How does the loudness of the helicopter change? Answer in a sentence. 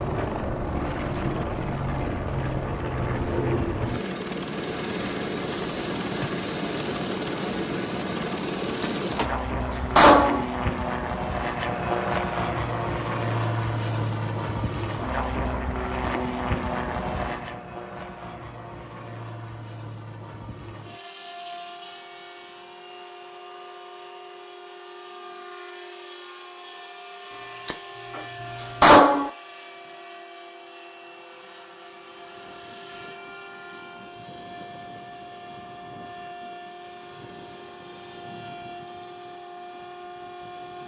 The loudness of the helicopter goes down.